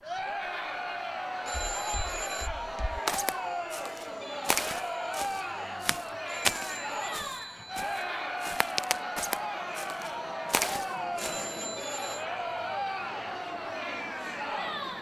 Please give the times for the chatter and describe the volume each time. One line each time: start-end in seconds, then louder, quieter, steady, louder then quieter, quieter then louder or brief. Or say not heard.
0.0-14.9 steady.